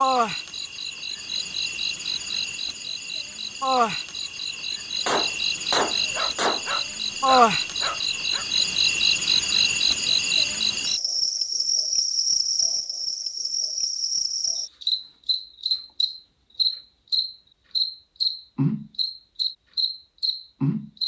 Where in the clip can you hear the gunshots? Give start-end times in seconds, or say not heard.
5.0-6.7.